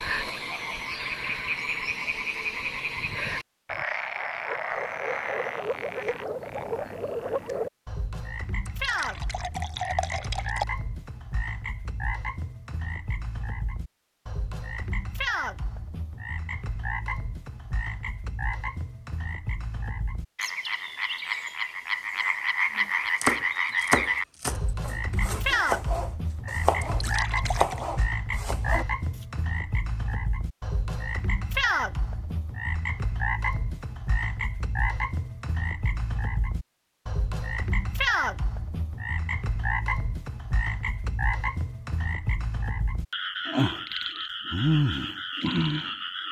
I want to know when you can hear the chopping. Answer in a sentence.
The chopping can be heard from 22.8 to 29.2 s.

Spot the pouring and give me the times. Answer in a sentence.
The pouring can be heard from 8.7 to 10.7 s and from 26.8 to 27.9 s.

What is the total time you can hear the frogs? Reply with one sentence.
The frogs can be heard for 46 seconds in total.